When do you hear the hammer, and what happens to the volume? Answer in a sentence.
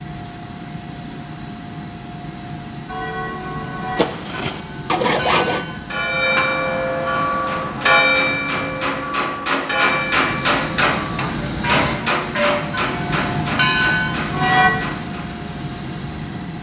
You can hear the hammer from 7.3 to 15.3 s, getting louder then quieter.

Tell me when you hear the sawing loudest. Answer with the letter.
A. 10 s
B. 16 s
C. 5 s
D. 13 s
C.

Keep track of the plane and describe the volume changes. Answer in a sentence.
The loudness of the plane goes up.